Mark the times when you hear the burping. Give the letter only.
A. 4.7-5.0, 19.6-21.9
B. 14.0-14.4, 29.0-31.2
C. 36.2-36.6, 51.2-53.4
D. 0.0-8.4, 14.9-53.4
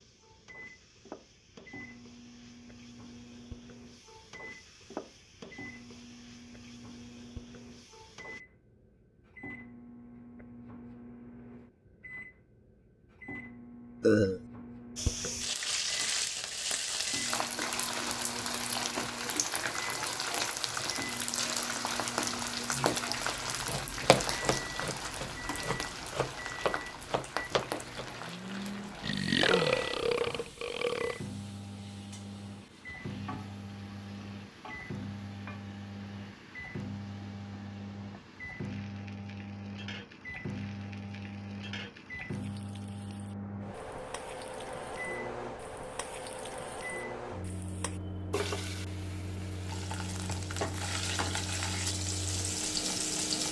B.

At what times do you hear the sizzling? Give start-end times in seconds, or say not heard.
0.0-8.4, 14.9-53.4.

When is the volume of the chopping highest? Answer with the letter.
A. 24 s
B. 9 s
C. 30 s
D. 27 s
A.